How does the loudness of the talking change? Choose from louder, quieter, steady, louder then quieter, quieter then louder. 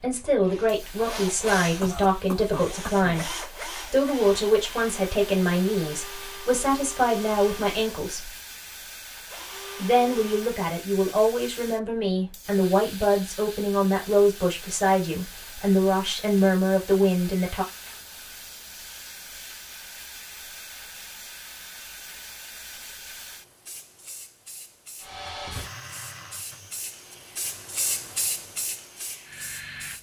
steady.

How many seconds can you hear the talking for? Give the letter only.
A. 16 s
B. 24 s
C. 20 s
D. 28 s
A.